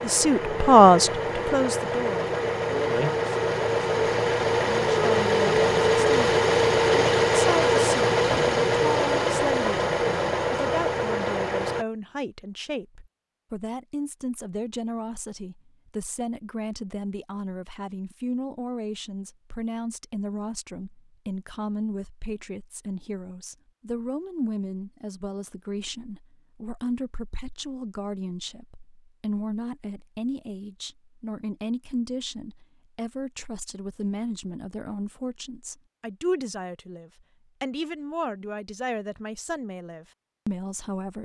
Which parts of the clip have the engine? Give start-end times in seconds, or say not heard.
0.0-11.8.